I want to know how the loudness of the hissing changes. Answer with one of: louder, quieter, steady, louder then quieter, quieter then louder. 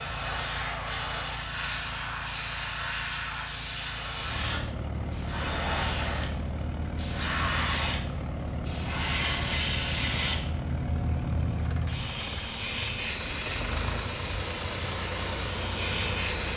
steady.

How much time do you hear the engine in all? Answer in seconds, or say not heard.
12 s.